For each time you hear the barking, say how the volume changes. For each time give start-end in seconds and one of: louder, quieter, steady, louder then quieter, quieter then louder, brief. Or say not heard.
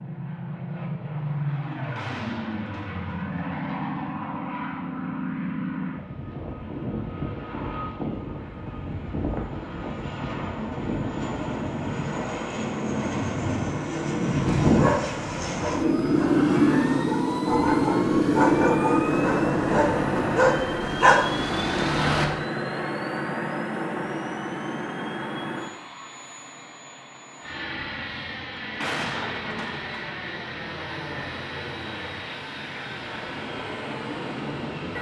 14.4-22.3 louder.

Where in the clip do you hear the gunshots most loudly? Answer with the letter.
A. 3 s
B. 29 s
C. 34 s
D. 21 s
B.